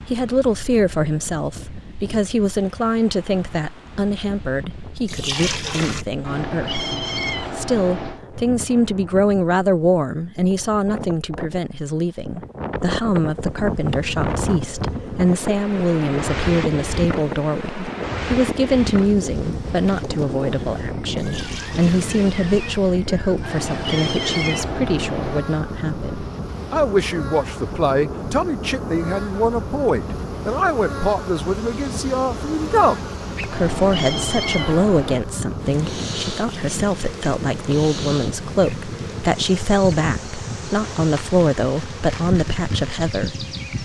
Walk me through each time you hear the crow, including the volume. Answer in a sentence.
The crow can't be heard in this clip.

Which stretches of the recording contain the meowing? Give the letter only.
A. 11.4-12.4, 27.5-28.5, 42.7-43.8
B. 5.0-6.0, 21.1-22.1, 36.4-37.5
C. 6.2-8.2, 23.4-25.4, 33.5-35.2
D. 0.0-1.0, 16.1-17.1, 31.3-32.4
C.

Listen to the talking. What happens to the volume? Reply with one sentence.
The volume of the talking stays about the same.